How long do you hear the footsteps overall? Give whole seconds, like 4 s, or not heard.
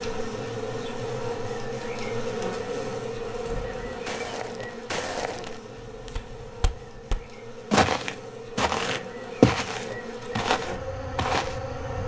8 s.